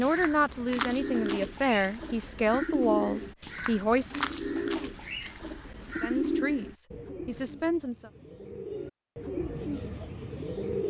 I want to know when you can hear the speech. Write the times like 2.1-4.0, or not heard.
0.0-4.2, 6.0-8.1.